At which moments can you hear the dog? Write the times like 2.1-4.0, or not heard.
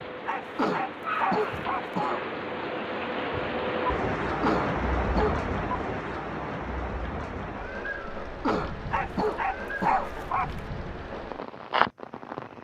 0.2-1.9, 8.9-10.6.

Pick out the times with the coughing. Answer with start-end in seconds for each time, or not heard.
0.6-2.2, 4.4-5.4, 8.4-10.1.